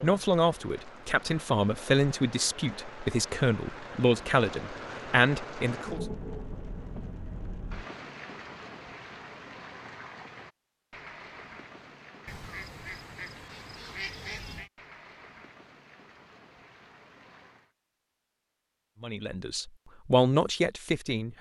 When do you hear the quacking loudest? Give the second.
14 s.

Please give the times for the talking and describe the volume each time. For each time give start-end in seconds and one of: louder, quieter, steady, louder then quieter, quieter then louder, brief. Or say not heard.
0.0-6.0 steady
19.0-21.3 brief.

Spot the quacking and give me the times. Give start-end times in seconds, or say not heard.
12.2-14.7.